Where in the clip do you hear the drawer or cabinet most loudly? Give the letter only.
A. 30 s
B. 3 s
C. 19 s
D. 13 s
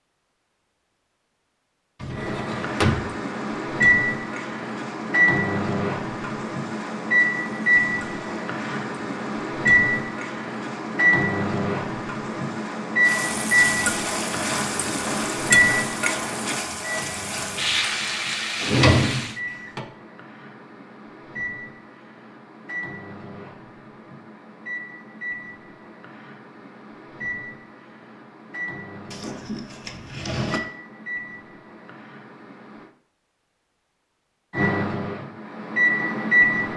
C.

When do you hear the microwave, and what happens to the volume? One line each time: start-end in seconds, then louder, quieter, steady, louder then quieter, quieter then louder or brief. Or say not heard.
2.1-32.9 quieter
34.5-36.7 brief.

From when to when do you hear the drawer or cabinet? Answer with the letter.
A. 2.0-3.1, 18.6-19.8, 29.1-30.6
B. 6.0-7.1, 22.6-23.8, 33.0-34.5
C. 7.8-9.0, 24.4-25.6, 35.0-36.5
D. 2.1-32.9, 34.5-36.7
A.